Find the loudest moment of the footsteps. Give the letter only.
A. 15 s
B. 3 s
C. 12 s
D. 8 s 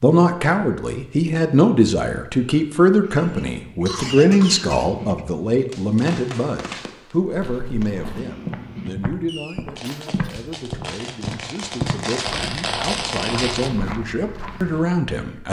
C.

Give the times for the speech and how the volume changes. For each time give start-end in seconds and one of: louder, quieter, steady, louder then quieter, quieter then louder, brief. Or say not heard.
0.0-15.4 quieter then louder.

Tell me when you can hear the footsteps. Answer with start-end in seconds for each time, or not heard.
7.2-15.0.